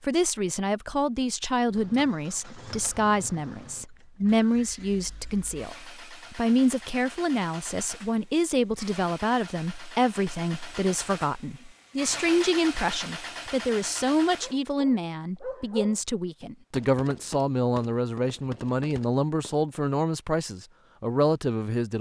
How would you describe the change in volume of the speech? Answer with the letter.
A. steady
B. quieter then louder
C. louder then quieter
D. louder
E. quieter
A.